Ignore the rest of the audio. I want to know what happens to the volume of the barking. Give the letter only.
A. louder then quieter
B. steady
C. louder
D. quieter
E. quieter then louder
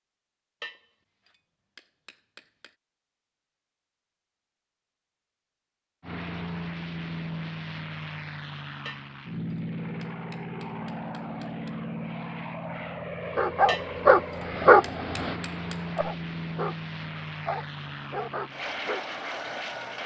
D.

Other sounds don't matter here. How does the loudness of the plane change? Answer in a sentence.
The loudness of the plane stays about the same.